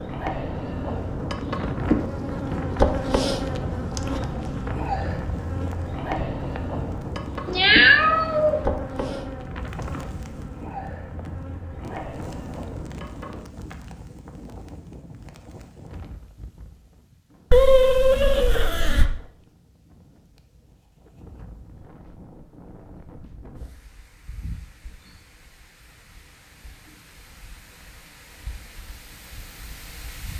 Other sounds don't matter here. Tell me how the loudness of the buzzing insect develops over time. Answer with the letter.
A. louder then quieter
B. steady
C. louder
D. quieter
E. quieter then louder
D.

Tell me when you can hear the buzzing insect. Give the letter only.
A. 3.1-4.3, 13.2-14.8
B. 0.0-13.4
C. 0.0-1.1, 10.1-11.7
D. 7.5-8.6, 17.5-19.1
B.